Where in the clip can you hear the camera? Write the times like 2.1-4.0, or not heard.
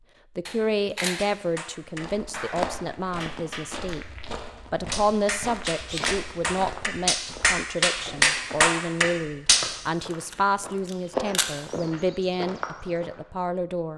0.5-1.2, 5.7-6.2, 10.1-11.6.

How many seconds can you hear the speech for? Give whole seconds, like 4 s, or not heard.
13 s.